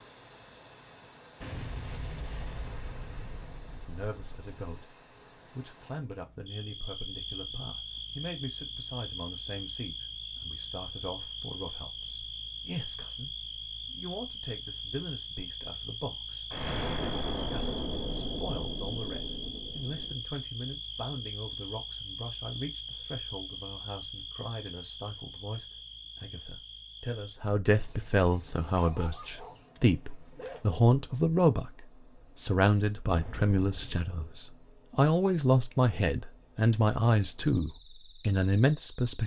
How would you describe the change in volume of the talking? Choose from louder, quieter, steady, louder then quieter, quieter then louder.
louder.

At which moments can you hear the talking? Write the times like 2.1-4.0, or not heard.
3.8-39.2.